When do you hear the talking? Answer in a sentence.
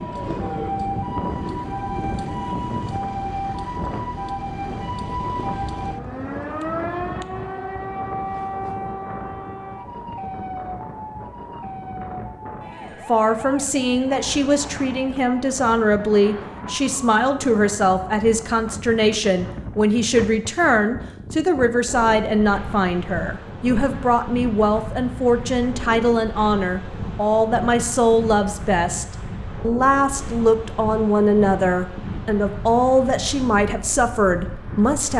You can hear the talking from 13.1 to 35.1 s.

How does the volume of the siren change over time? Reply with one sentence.
The loudness of the siren goes down.